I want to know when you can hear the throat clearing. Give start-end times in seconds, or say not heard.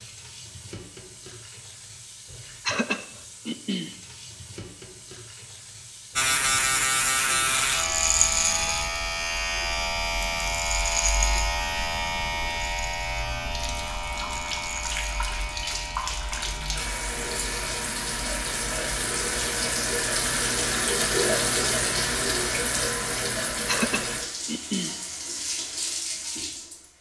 2.6-4.0, 23.6-24.9.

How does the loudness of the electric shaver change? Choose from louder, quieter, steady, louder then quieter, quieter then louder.
quieter.